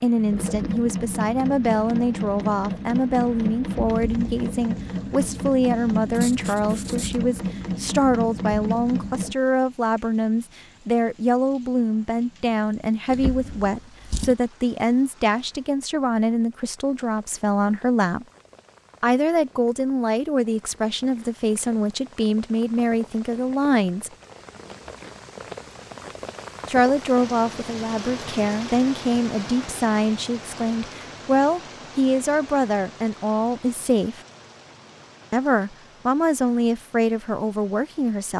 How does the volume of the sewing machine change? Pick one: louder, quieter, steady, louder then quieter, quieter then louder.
steady.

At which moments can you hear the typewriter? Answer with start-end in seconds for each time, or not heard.
not heard.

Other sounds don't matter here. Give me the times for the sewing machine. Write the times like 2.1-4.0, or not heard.
0.0-9.3.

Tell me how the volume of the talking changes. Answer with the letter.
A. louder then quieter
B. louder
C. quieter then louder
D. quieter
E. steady
E.